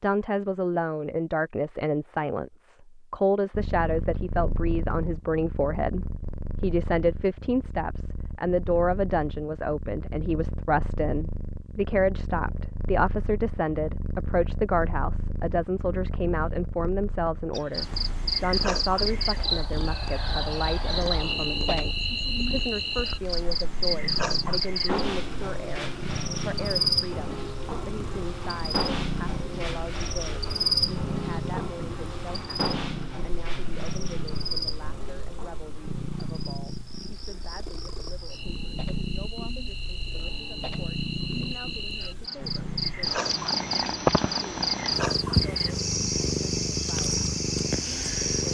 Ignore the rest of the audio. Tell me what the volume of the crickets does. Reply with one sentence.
The loudness of the crickets goes down, then up.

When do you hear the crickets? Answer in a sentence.
The crickets can be heard from 17.5 to 48.4 s.